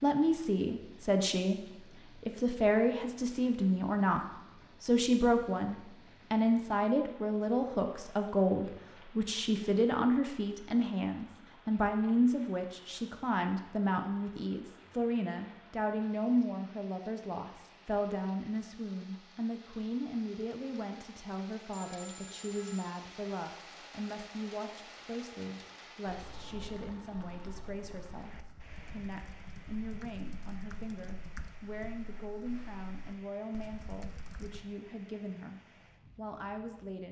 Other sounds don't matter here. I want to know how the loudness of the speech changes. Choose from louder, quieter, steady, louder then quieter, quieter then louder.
quieter.